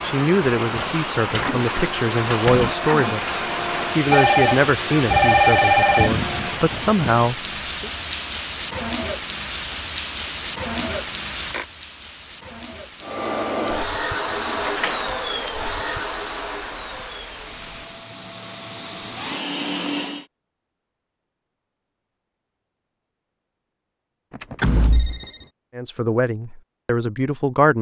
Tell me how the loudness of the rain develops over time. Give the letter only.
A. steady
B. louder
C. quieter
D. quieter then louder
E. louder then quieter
C.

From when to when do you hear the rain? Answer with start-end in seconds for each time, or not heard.
0.0-18.1.